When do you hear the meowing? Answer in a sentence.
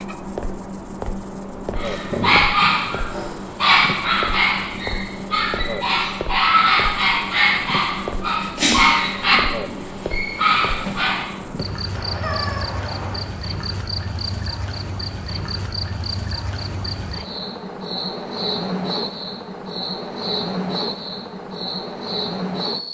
The meowing can be heard from 1.6 to 2.7 s and from 11.9 to 13.3 s.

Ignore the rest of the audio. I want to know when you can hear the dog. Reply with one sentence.
You can hear the dog from 1.8 to 11.2 s.